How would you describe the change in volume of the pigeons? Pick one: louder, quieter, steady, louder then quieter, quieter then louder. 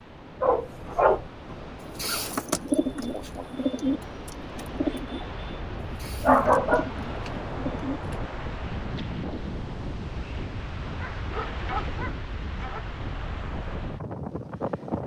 quieter then louder.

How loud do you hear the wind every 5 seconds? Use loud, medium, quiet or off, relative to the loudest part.
medium, loud, loud.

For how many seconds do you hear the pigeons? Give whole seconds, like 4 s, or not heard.
6 s.